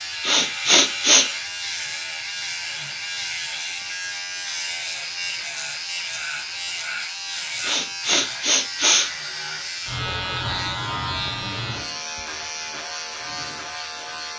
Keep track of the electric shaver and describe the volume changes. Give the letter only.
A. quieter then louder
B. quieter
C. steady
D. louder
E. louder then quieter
C.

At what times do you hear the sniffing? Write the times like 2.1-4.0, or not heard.
0.2-1.2, 7.6-9.1.